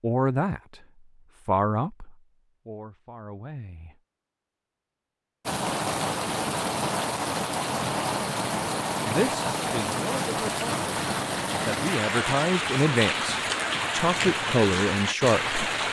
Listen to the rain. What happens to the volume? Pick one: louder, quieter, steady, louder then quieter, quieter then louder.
steady.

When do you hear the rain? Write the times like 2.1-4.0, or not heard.
5.5-15.8.